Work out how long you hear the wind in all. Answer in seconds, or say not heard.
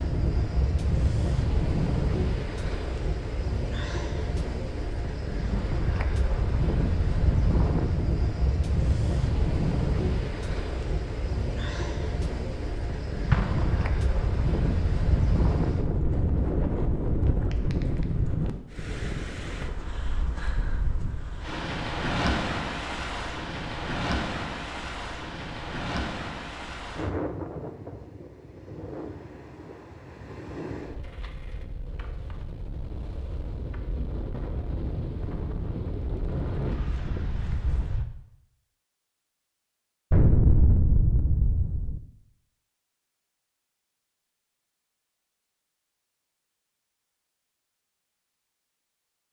38 s.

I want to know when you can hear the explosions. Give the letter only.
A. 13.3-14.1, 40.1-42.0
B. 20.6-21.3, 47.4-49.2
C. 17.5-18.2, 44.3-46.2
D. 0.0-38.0
A.